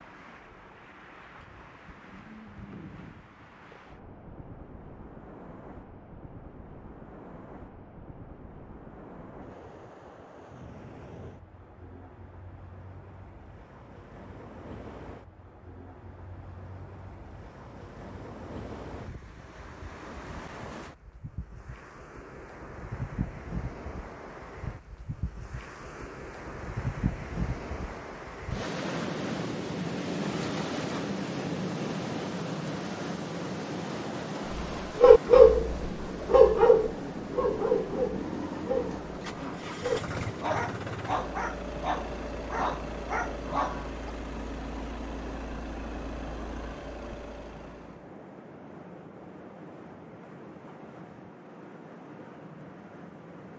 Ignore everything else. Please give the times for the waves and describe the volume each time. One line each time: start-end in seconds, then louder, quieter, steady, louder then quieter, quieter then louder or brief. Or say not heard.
0.0-53.5 louder then quieter.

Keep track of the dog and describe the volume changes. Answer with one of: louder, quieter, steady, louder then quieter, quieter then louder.
quieter.